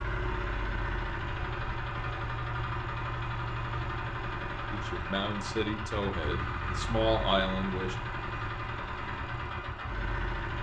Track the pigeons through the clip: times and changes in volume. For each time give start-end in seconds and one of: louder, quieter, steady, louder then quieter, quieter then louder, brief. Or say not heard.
not heard.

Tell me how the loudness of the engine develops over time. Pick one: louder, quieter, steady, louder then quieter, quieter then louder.
steady.